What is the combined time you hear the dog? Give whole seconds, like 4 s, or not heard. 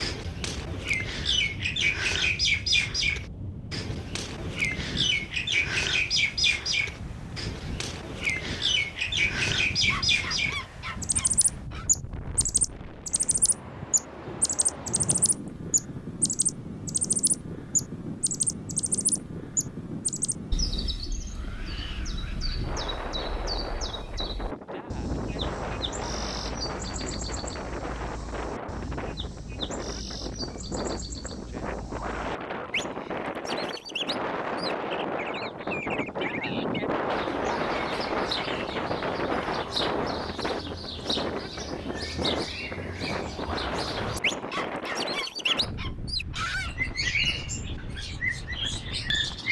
4 s.